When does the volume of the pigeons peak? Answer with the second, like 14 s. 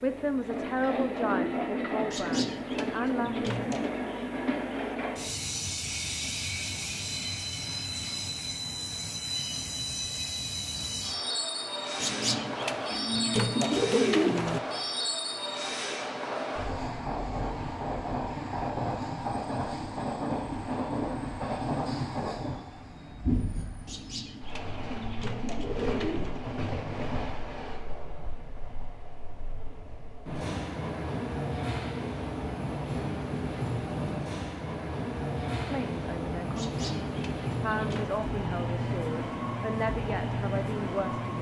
14 s.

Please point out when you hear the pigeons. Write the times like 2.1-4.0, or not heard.
2.1-3.9, 12.0-14.6, 23.9-26.4, 36.5-38.1.